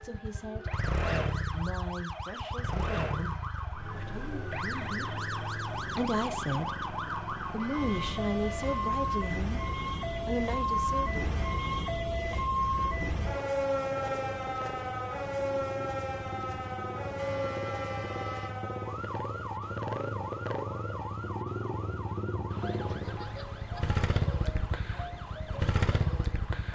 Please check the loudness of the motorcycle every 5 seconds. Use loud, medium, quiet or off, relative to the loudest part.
loud, medium, medium, medium, loud, loud.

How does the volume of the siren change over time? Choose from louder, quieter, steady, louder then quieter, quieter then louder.
louder then quieter.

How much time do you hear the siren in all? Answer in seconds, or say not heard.
27 s.